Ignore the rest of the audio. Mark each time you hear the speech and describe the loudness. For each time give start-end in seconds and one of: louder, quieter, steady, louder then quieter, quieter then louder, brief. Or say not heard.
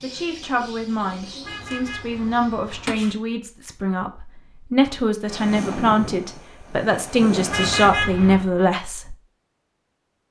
0.0-9.2 louder.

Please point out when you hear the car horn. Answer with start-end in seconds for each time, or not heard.
1.4-3.1, 7.5-8.5.